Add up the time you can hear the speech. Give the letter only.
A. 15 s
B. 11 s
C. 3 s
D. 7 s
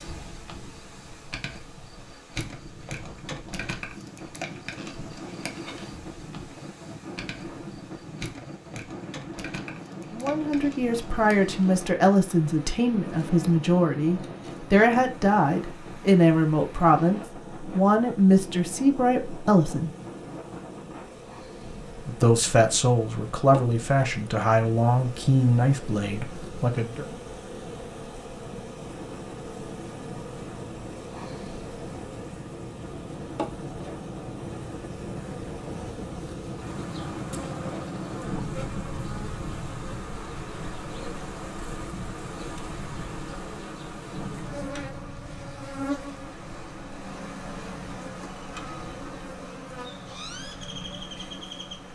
A.